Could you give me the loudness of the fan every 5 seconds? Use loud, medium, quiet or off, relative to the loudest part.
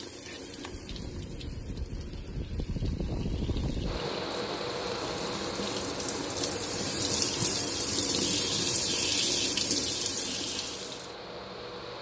loud, loud, medium.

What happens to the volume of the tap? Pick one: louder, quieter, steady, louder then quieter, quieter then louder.
louder.